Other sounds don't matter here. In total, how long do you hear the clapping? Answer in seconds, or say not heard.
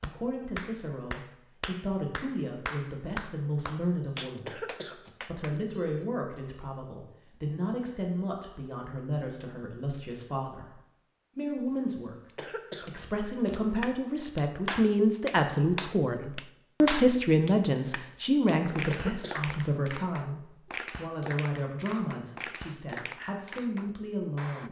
17 s.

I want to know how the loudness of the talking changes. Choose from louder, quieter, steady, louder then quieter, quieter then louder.
louder then quieter.